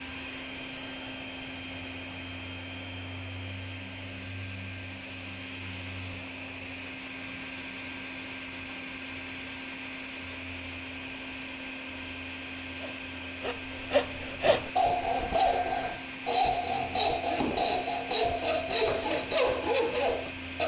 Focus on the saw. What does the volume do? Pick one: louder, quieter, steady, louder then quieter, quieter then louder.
steady.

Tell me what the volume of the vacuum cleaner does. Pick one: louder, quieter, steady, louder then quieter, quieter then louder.
steady.